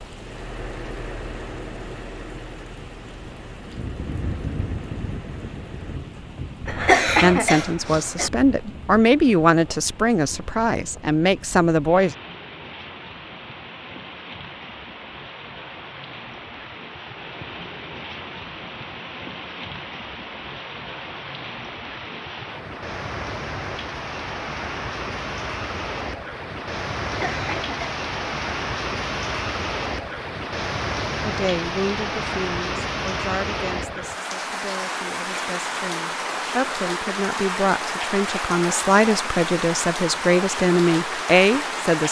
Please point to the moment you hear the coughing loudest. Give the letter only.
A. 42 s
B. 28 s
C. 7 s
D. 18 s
C.